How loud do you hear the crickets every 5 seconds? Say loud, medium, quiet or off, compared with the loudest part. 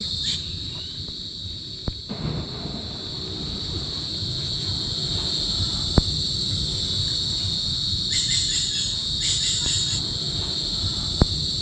medium, loud, loud.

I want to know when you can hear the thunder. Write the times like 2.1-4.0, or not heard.
2.0-4.1.